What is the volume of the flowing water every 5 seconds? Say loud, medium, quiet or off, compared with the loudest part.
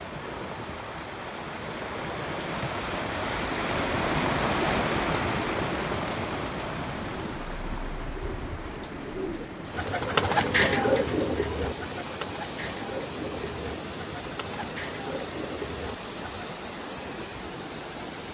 loud, loud, medium, medium.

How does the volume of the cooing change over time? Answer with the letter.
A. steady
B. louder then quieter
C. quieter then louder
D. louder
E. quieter
B.